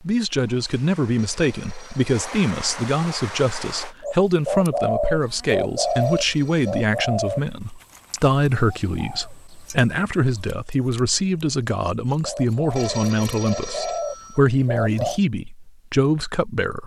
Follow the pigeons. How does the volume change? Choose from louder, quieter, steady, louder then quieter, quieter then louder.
quieter then louder.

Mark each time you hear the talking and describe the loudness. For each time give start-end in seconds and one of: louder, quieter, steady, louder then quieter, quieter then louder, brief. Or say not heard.
0.0-16.8 steady.